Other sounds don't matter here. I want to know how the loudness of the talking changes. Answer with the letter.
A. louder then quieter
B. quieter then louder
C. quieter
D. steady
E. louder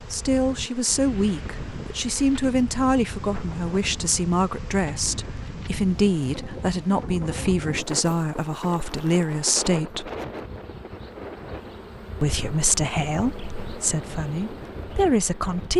D.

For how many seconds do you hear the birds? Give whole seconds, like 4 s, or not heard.
not heard.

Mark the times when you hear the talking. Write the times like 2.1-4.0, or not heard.
0.0-10.1, 12.2-15.7.